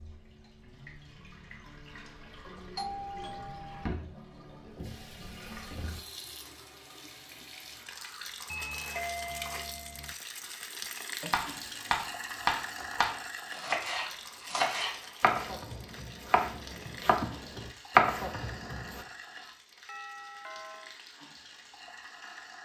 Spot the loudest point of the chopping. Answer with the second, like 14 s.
18 s.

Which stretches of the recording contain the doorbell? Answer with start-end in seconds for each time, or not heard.
2.8-3.9, 8.4-10.2, 19.9-20.9.